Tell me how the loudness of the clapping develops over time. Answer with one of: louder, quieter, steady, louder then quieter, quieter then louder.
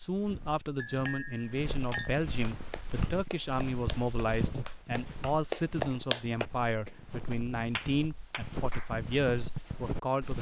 louder then quieter.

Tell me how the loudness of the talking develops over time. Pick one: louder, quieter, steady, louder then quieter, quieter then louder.
steady.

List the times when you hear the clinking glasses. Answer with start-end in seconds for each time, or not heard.
0.8-2.1.